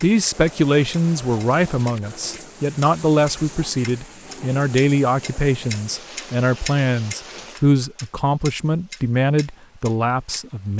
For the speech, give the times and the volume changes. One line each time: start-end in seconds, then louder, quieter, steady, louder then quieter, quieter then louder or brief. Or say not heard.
0.0-10.7 steady.